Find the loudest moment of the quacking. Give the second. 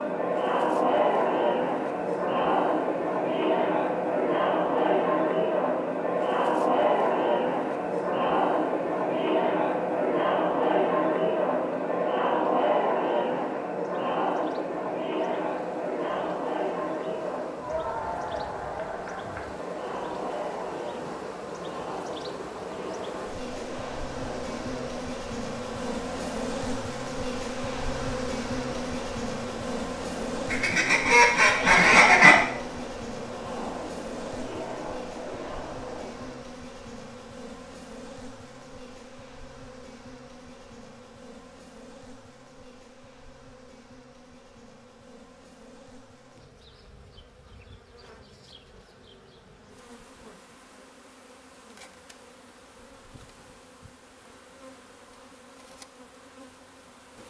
32 s.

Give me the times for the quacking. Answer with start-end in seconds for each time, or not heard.
30.5-32.4.